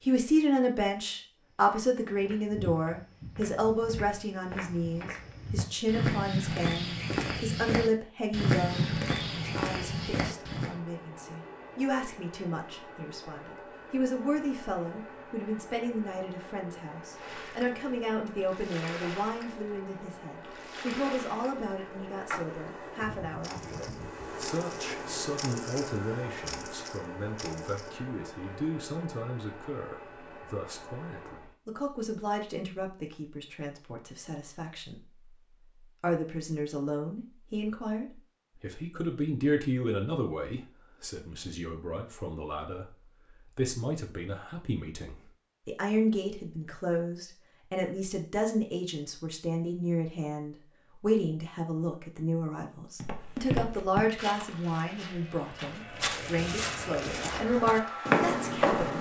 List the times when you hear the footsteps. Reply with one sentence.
The footsteps can be heard from 1.6 to 10.8 s and from 53.0 to 58.9 s.